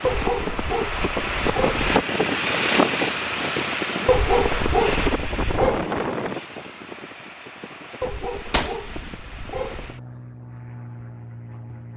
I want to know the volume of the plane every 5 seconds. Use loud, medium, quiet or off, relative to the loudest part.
loud, medium, quiet.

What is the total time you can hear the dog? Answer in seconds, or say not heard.
6 s.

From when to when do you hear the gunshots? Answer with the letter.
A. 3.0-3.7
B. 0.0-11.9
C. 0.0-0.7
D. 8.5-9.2
D.